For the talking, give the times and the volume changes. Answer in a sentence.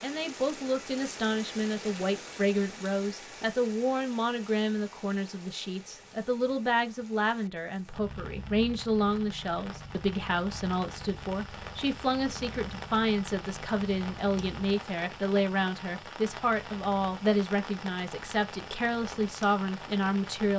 The talking can be heard from 0.0 to 20.5 s, at a steady volume.